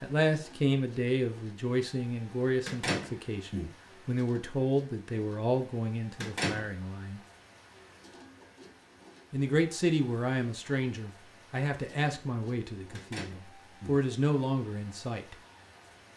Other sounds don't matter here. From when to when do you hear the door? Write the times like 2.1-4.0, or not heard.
2.6-3.7, 6.2-6.7, 12.9-14.0.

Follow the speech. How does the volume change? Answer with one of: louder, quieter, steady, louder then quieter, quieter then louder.
steady.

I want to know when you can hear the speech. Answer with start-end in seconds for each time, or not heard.
0.0-7.2, 9.3-15.3.